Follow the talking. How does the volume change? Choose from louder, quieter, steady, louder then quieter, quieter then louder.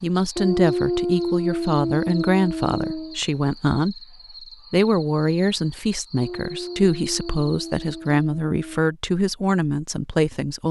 steady.